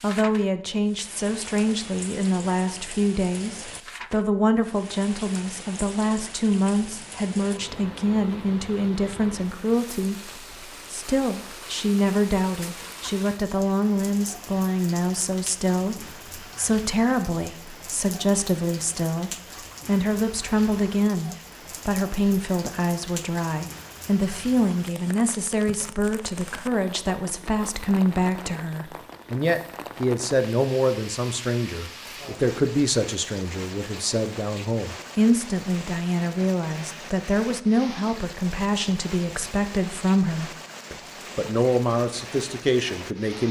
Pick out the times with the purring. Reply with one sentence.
You can't hear the purring here.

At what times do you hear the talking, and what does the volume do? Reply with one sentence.
The talking can be heard from 0.0 to 43.4 s, at a steady volume.